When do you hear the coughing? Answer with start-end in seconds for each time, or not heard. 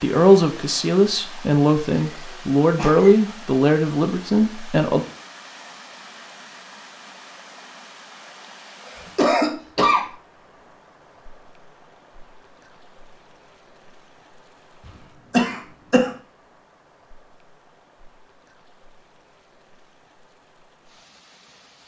1.9-3.1, 8.8-10.1, 15.3-16.1.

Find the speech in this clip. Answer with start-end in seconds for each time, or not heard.
0.0-5.0.